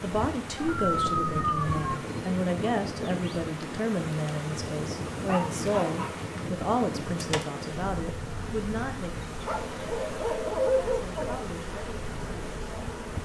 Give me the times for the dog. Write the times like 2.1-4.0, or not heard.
0.6-2.0, 5.1-6.2, 9.4-11.4.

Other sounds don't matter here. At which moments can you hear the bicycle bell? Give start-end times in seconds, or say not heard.
not heard.